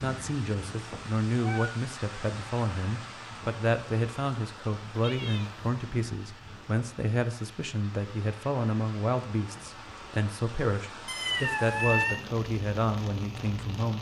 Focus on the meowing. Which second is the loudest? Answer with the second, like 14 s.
12 s.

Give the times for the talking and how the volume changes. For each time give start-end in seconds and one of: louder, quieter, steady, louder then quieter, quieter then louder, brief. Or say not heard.
0.0-13.9 steady.